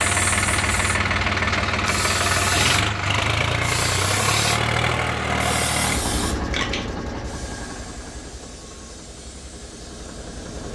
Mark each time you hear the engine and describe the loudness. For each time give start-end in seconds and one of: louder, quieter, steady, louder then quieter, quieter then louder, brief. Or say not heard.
0.0-10.7 quieter.